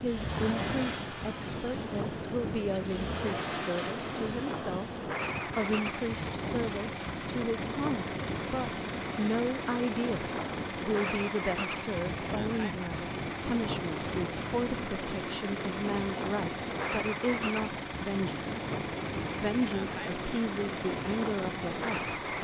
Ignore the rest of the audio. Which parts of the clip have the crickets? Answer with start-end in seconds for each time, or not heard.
not heard.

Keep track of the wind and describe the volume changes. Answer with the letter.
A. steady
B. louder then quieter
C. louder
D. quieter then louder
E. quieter
A.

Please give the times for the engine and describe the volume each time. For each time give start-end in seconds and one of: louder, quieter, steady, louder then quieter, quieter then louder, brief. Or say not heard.
0.0-22.3 steady.